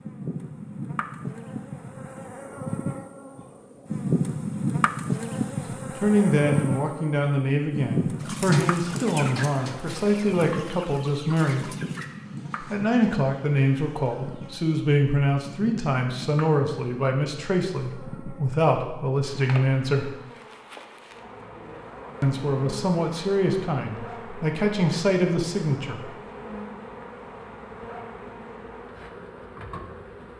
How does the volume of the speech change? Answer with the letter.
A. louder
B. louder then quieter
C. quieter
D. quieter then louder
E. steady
E.